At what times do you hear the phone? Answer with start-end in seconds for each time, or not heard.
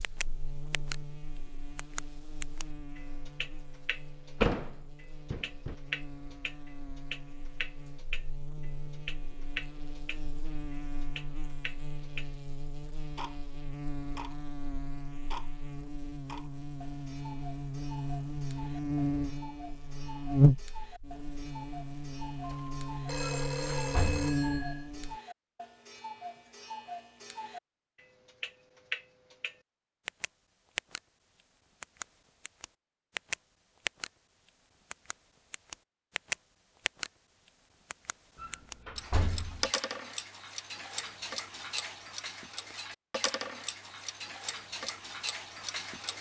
22.4-24.9.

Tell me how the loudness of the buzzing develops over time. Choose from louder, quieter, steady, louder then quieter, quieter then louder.
louder.